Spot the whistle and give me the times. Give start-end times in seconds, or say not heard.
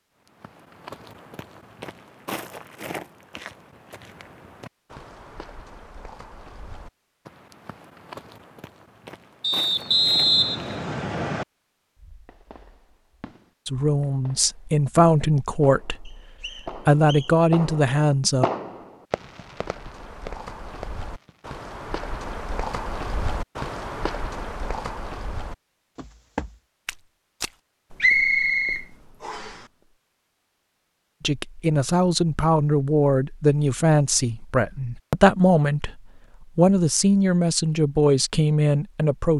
9.4-11.4, 16.1-17.4, 28.0-29.6.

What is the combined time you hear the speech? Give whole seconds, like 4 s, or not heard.
13 s.